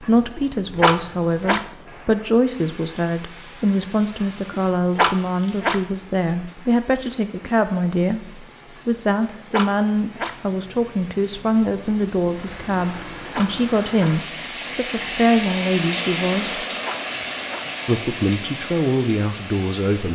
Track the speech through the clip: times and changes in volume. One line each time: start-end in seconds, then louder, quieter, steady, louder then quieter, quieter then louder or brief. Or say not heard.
0.0-16.6 steady
17.9-20.0 brief.